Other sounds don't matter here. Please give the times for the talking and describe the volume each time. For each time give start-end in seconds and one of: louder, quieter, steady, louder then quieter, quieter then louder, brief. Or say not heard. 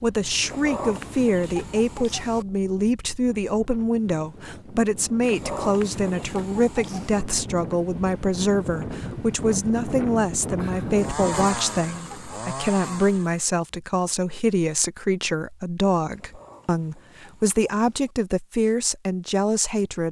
0.0-20.0 steady.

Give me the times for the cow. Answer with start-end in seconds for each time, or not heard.
not heard.